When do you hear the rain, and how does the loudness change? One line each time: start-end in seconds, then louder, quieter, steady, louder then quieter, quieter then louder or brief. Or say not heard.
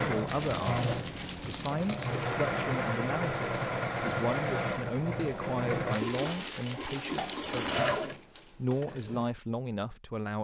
not heard.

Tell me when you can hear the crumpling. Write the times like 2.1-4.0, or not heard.
0.2-2.5, 5.9-8.2.